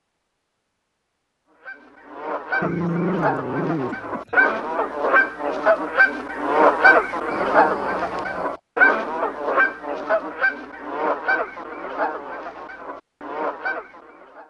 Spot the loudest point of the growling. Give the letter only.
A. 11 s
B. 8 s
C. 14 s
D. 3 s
D.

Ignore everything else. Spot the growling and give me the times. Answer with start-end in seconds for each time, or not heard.
2.6-4.3, 7.3-8.6.